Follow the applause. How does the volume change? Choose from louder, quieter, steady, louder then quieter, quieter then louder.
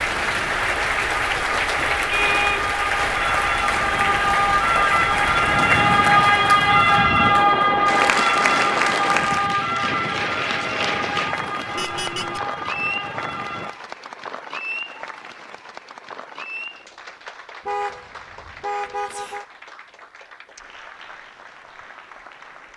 quieter.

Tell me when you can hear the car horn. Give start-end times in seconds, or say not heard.
2.1-2.8, 11.8-12.4, 17.6-19.4.